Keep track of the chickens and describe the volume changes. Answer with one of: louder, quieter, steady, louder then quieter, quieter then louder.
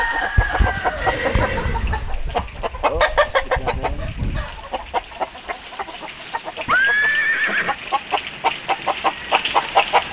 quieter then louder.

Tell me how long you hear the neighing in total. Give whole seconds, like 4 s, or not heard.
2 s.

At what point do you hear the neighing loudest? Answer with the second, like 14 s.
7 s.